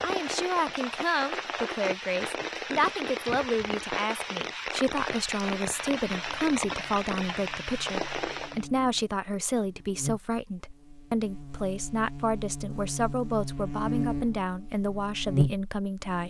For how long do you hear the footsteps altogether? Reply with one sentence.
The footsteps can't be heard in this clip.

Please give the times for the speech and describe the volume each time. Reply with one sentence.
The speech can be heard from 0.0 to 16.2 s, at a steady volume.